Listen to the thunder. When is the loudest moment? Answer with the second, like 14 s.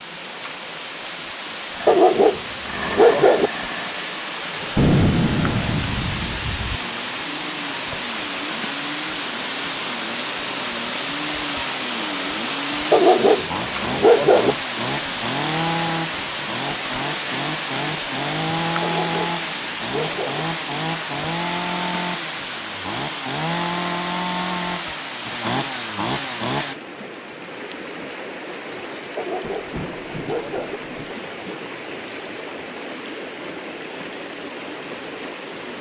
5 s.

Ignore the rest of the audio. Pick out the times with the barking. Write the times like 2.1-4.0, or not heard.
1.9-3.5, 12.9-14.6, 18.8-20.4, 29.1-30.8.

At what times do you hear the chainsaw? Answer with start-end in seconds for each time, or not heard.
1.7-26.8.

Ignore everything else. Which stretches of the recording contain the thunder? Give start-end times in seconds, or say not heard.
4.8-6.8, 29.4-31.1.